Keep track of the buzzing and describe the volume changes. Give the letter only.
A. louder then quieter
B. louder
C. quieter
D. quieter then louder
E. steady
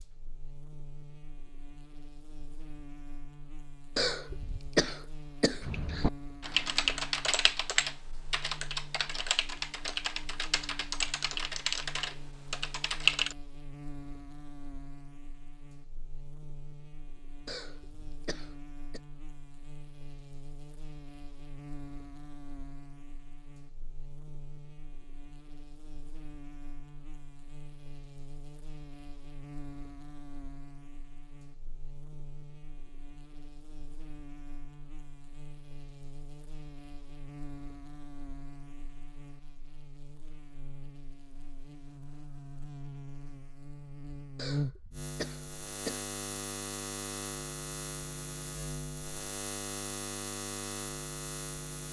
B.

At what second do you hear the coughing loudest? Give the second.
5 s.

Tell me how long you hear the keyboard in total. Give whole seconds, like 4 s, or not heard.
8 s.